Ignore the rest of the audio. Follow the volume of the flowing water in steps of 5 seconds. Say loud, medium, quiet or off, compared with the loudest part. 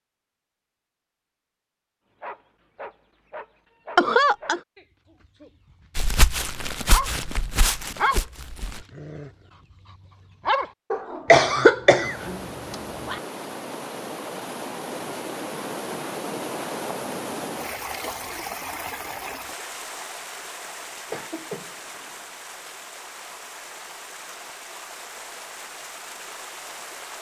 off, off, loud, loud, medium, medium.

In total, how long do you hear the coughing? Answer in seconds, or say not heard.
4 s.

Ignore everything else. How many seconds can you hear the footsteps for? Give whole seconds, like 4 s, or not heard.
3 s.